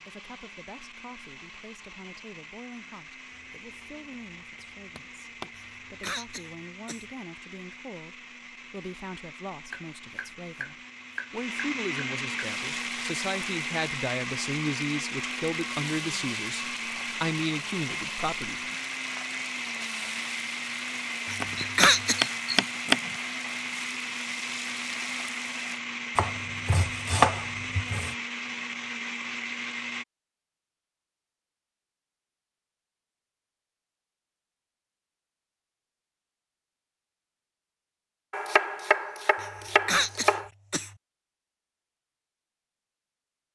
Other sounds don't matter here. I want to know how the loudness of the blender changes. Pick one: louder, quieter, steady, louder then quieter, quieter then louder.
louder.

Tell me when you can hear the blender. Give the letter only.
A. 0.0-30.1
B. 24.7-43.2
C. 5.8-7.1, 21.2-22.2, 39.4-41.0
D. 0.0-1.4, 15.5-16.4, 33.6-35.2
A.